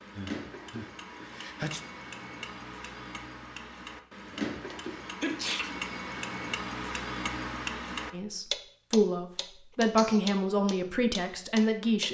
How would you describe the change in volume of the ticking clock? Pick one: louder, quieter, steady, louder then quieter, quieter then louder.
louder.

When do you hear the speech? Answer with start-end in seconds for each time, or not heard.
8.1-12.0.